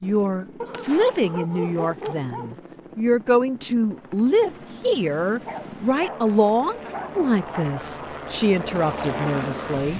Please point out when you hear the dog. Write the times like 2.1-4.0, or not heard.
0.6-2.5, 5.5-7.7.